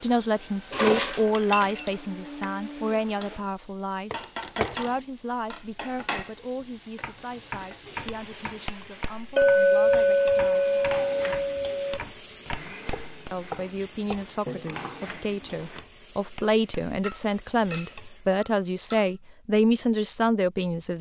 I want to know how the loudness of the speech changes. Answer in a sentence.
The loudness of the speech goes down, then up.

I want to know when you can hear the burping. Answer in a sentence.
You can't hear the burping here.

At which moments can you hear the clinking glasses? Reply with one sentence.
You can hear the clinking glasses from 0.7 to 1.9 s, from 9.3 to 12.0 s and from 17.0 to 19.1 s.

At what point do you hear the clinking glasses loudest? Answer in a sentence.
The loudest moment of the clinking glasses is at 10 seconds.